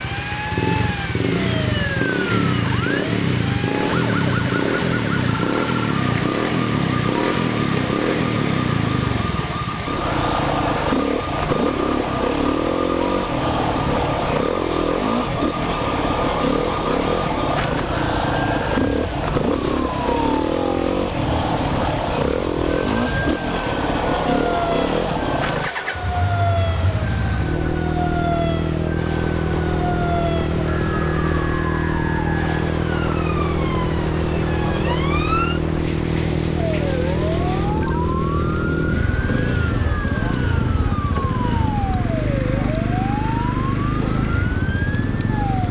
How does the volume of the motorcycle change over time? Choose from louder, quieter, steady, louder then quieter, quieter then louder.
steady.